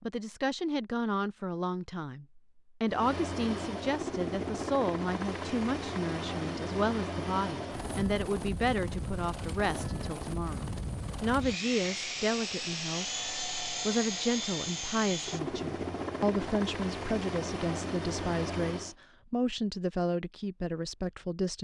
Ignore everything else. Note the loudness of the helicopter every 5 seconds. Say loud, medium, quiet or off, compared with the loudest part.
loud, loud, loud, loud, off.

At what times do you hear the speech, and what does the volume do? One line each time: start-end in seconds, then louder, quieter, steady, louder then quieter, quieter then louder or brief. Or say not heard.
0.0-21.6 steady.